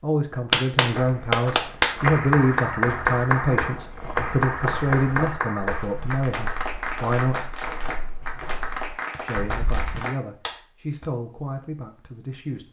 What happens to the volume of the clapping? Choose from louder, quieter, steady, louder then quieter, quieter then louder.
quieter.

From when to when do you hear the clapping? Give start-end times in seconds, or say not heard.
0.5-11.1.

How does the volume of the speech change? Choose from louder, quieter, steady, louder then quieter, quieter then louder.
quieter.